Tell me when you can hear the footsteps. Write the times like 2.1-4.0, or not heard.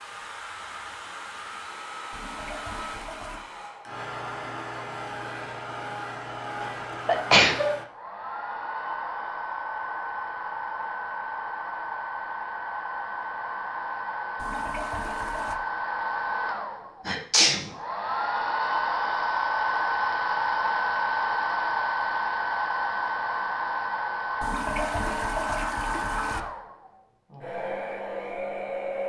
not heard.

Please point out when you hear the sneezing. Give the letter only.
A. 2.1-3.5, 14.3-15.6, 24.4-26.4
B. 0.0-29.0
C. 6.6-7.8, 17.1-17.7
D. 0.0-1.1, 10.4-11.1
C.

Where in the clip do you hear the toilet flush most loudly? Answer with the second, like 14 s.
25 s.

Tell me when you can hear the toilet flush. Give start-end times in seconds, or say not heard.
2.1-3.5, 14.3-15.6, 24.4-26.4.